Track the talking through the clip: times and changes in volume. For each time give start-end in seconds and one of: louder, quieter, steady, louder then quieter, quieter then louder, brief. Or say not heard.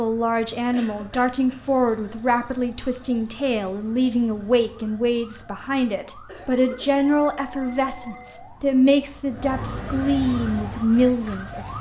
0.0-11.7 steady.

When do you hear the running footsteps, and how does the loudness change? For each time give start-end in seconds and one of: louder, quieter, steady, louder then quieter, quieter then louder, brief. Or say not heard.
not heard.